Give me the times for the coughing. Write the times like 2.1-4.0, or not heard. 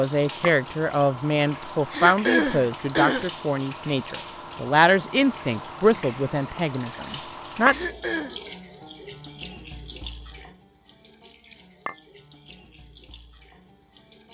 1.9-3.3, 7.7-8.3.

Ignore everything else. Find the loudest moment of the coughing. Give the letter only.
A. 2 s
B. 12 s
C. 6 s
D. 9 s
A.